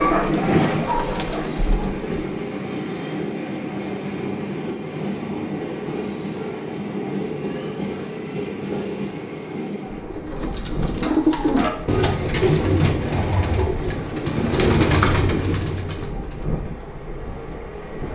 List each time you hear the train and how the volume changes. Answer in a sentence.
You can hear the train from 0.0 to 18.1 s, getting quieter.